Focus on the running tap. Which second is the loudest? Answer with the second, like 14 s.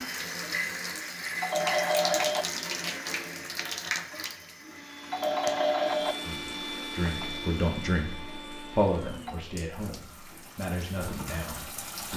2 s.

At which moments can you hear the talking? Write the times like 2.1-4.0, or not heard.
6.2-12.1.